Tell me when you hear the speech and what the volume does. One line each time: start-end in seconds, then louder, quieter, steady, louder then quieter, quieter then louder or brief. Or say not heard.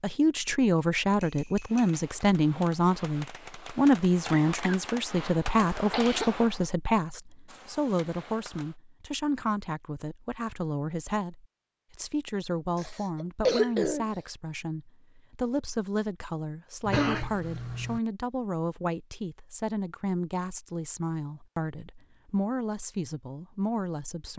0.0-24.3 quieter.